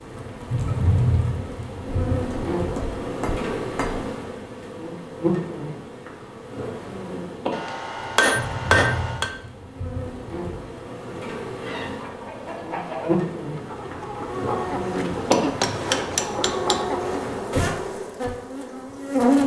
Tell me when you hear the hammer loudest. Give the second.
9 s.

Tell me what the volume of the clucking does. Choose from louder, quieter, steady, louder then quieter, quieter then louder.
louder.